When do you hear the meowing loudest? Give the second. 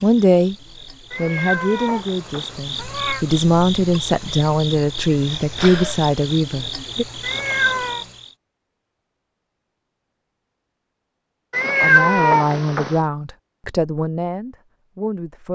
12 s.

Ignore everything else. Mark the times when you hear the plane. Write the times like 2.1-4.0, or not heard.
not heard.